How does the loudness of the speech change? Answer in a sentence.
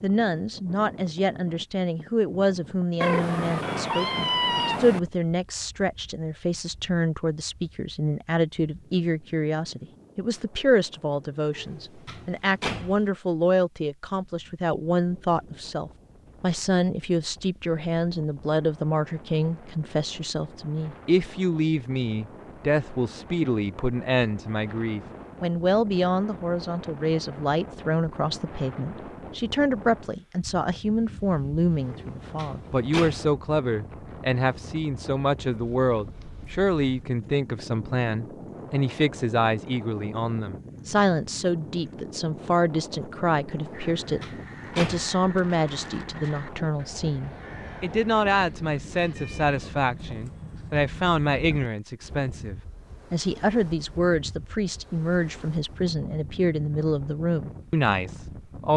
The volume of the speech stays about the same.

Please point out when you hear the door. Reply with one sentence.
You can hear the door from 11.6 to 13.1 s, from 31.9 to 33.2 s and from 43.6 to 45.1 s.